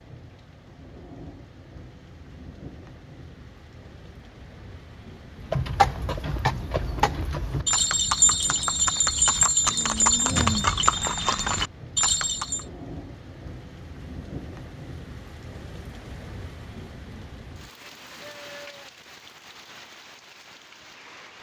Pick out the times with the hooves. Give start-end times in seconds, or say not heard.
5.3-12.7.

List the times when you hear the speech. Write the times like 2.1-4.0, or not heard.
not heard.